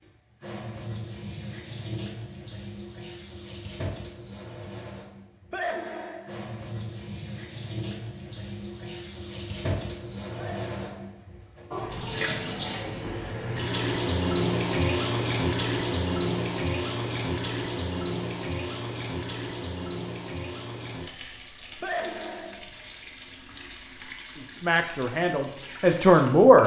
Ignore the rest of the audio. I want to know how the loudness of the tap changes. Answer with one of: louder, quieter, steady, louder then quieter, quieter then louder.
louder then quieter.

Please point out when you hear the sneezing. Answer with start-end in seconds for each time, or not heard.
5.5-6.3, 10.3-11.2, 21.8-22.6.